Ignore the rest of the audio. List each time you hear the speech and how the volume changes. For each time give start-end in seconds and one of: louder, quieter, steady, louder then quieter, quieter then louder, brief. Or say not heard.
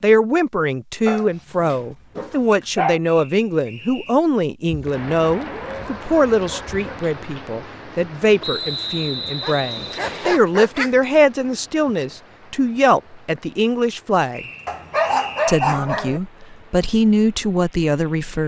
0.0-14.4 steady
15.4-18.4 brief.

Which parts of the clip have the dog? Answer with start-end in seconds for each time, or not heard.
1.1-3.0, 4.7-7.0, 9.4-10.9, 14.7-16.2.